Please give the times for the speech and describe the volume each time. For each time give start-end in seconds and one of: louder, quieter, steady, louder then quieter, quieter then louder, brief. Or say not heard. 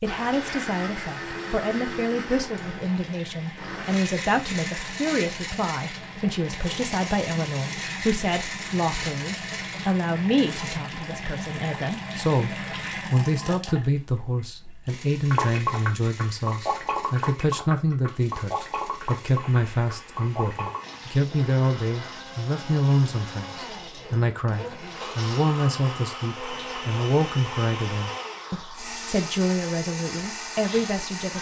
0.0-31.3 steady.